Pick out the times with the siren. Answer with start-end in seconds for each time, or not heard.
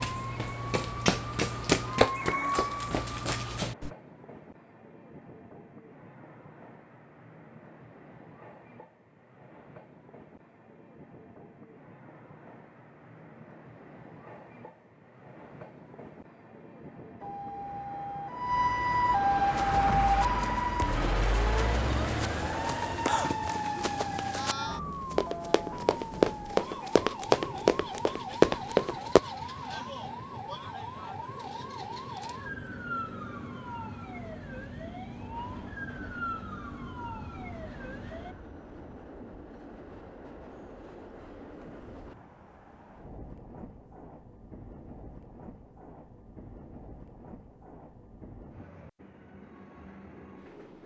0.0-3.6, 17.2-38.4.